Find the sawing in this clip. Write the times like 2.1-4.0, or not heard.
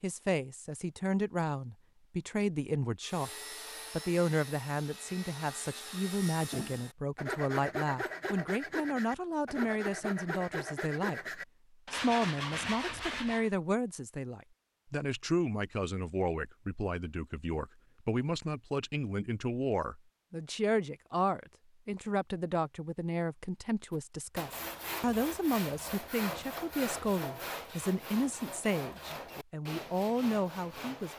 3.0-13.5, 23.9-31.1.